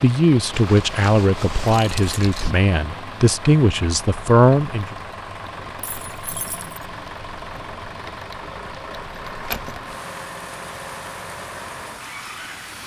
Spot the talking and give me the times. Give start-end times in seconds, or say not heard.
0.0-5.0.